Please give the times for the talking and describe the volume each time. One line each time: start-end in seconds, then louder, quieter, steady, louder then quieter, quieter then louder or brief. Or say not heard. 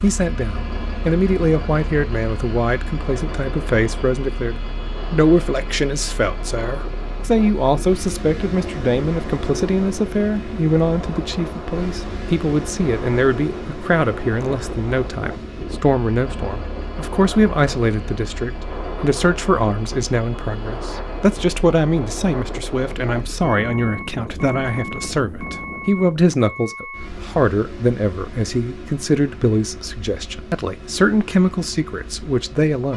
0.0-32.9 steady.